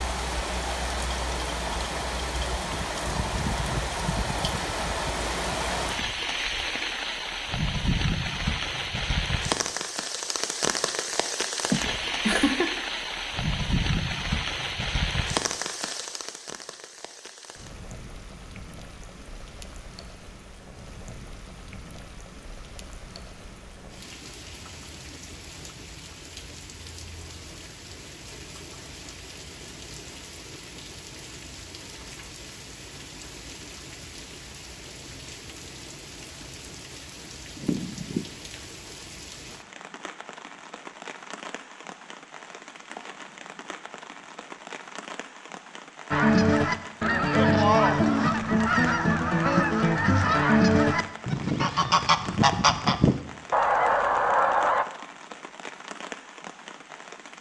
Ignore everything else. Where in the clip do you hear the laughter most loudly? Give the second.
12 s.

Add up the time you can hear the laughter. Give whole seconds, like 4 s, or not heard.
2 s.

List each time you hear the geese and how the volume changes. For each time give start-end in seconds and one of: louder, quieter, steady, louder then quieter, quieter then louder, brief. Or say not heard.
46.1-54.9 steady.